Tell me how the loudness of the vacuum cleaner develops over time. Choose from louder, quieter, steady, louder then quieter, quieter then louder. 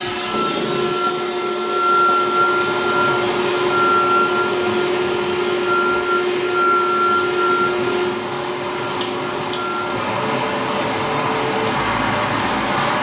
quieter.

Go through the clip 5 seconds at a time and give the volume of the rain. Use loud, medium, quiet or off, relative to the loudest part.
medium, medium, loud.